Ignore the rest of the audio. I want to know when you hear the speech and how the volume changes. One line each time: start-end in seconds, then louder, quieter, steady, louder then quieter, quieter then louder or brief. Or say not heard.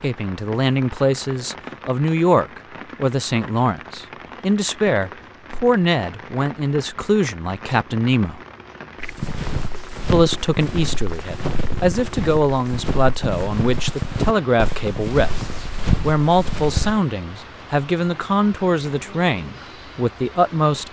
0.0-8.4 steady
10.1-20.8 steady.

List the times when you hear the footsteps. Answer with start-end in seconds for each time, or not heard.
9.0-17.0.